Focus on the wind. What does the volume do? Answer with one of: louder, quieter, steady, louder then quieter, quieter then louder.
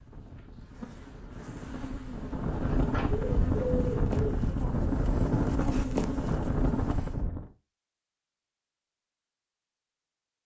louder.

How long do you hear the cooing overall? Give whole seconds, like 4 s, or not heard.
2 s.